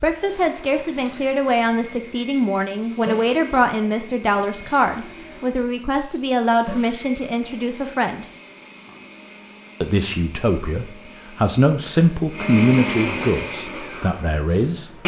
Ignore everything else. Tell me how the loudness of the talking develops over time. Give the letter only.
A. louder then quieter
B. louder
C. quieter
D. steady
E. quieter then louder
D.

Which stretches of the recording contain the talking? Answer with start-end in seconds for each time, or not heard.
0.0-8.2, 9.8-14.9.